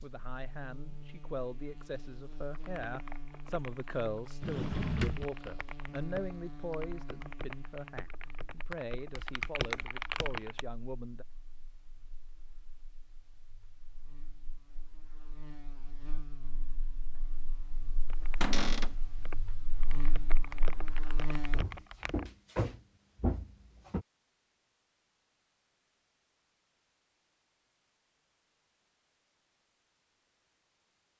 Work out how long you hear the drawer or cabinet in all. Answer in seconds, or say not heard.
4 s.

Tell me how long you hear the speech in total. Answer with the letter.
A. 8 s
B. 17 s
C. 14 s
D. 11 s
D.